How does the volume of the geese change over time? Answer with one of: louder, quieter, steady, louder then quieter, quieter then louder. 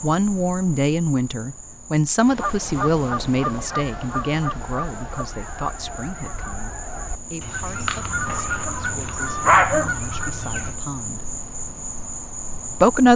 quieter then louder.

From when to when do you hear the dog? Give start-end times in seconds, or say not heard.
8.2-9.9.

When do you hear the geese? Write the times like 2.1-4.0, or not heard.
2.2-10.8.